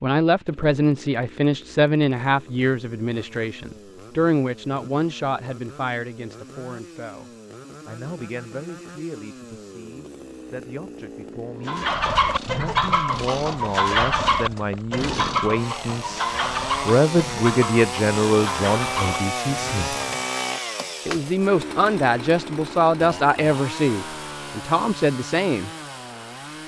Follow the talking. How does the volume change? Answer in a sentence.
The loudness of the talking goes down, then up.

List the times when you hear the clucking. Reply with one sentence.
The clucking can be heard from 11.7 to 20.1 s.